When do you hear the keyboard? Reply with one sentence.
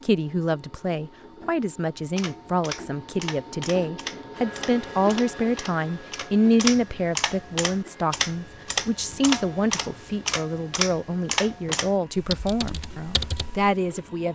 You can hear the keyboard from 2.1 to 13.7 s.